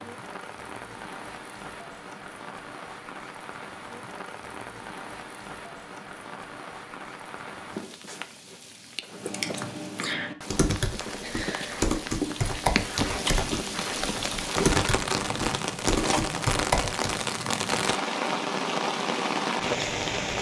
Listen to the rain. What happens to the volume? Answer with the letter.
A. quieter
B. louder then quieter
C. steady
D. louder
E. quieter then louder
D.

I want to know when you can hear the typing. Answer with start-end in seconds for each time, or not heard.
9.2-17.2.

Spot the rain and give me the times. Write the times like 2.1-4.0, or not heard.
0.0-20.3.